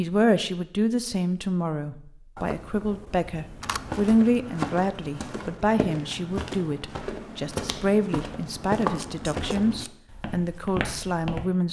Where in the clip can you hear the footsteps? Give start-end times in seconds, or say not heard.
3.6-11.4.